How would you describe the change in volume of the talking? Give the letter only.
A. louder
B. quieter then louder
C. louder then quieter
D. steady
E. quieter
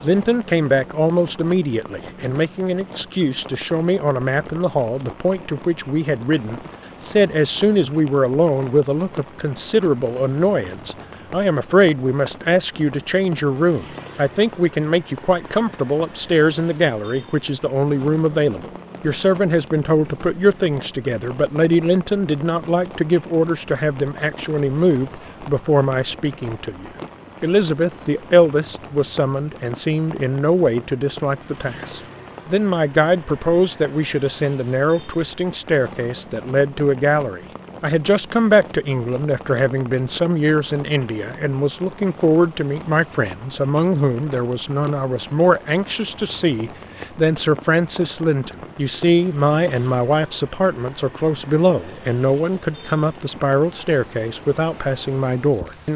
D.